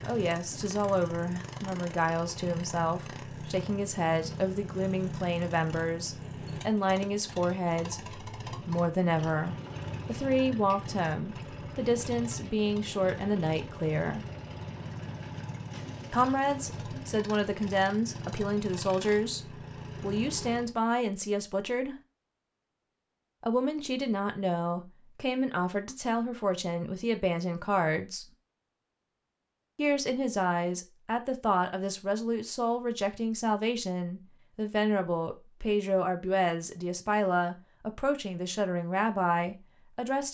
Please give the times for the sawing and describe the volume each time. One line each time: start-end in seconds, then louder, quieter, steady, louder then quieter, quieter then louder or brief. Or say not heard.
not heard.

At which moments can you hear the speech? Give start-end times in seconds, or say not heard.
0.0-14.2, 16.1-21.9, 23.4-28.3, 29.8-40.2.